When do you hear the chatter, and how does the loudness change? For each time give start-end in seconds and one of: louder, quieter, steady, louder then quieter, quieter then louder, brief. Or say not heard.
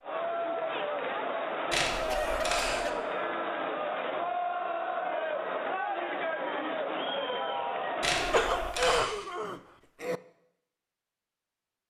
0.0-8.8 steady.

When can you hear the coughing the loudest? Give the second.
9 s.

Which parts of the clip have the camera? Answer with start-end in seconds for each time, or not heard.
1.7-2.9, 8.0-9.1.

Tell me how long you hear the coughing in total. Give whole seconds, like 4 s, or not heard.
3 s.